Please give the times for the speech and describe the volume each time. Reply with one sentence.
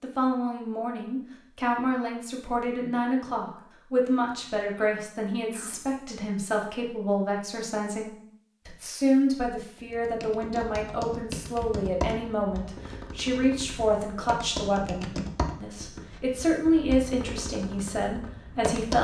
You can hear the speech from 0.0 to 18.9 s, at a steady volume.